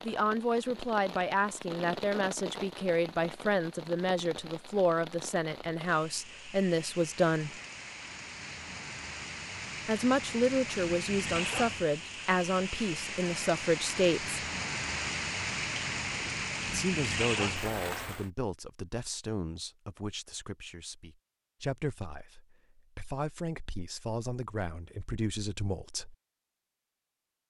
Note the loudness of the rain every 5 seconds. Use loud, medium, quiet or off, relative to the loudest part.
medium, medium, loud, loud, off, off.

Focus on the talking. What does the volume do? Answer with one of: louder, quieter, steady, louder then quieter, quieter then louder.
quieter.